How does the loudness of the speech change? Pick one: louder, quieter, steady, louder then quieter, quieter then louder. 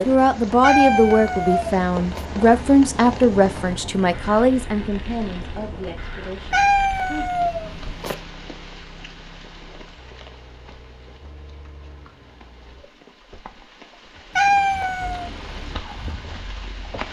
quieter.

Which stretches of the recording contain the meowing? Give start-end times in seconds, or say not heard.
0.6-2.2, 6.5-8.2, 14.3-15.3.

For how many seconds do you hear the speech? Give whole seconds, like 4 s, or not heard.
7 s.